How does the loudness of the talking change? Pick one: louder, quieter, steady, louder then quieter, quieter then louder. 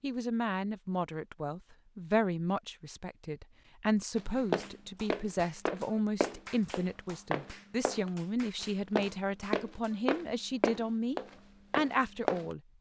steady.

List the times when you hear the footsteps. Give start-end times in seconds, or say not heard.
4.2-12.6.